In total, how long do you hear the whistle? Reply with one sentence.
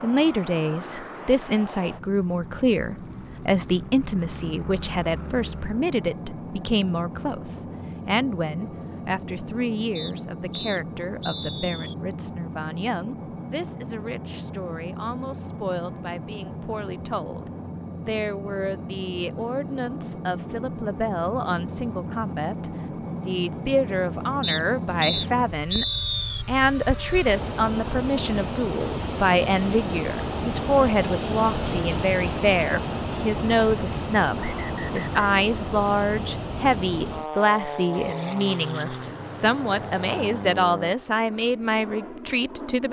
The whistle can be heard for 5 seconds in total.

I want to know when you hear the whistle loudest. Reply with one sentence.
The volume of the whistle peaks at 26 seconds.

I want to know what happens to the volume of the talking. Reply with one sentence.
The loudness of the talking goes down, then up.